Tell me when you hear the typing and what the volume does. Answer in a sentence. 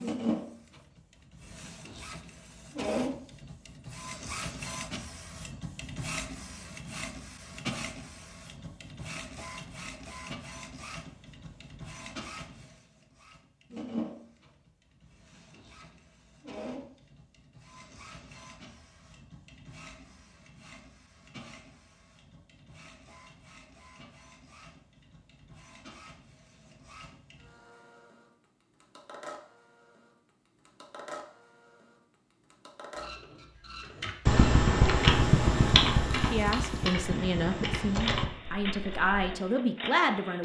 The typing can be heard from 34.0 to 39.3 s, getting quieter.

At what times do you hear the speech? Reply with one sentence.
The speech can be heard from 36.1 to 40.3 s.